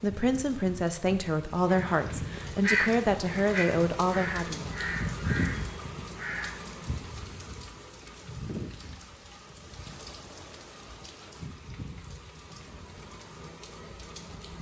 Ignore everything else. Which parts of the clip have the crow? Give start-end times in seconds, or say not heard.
1.6-6.5.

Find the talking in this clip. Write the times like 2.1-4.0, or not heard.
0.0-4.7.